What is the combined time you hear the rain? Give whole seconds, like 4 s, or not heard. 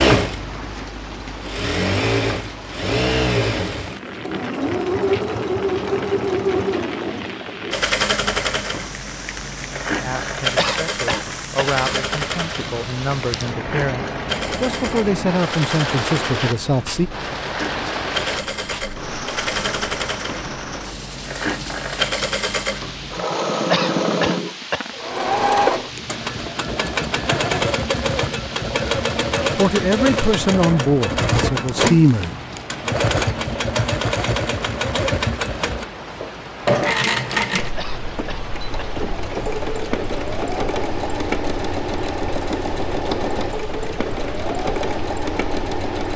46 s.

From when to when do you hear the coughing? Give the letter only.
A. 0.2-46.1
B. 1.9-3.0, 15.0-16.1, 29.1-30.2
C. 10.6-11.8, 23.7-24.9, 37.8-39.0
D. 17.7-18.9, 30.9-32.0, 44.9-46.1
C.